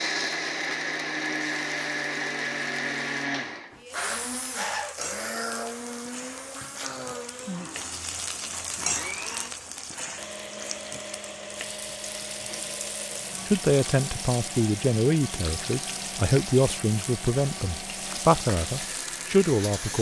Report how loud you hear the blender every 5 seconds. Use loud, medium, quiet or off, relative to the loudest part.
loud, medium, medium, medium.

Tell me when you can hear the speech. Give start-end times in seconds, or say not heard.
13.4-19.9.